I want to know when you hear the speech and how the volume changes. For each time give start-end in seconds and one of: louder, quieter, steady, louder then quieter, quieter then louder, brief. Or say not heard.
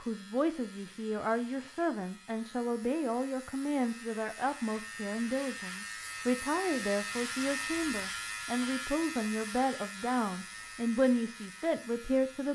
0.0-12.5 steady.